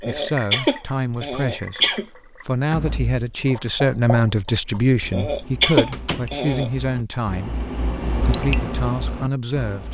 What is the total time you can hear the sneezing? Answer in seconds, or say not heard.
4 s.